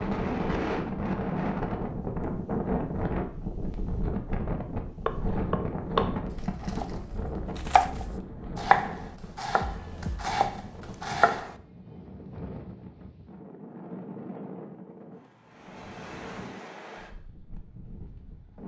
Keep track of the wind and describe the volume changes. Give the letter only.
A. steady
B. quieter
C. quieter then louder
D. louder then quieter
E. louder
B.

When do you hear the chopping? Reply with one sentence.
The chopping can be heard from 5.0 to 11.5 s.